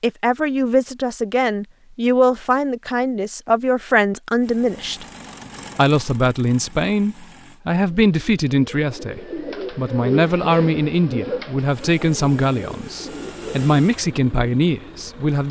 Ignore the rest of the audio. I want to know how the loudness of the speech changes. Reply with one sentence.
The loudness of the speech stays about the same.